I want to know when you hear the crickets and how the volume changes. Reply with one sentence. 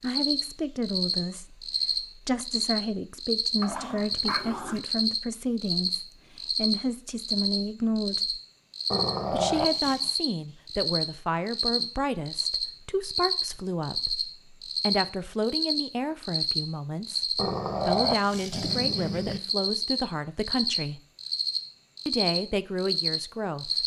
You can hear the crickets from 0.0 to 23.8 s, at a steady volume.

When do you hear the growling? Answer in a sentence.
The growling can be heard from 3.6 to 4.8 s, from 8.9 to 10.1 s and from 17.4 to 19.4 s.